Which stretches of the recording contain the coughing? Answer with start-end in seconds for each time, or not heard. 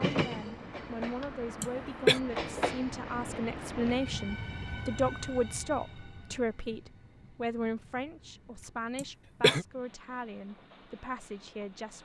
1.6-2.2, 8.9-9.7.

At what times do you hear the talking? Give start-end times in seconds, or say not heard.
0.1-12.0.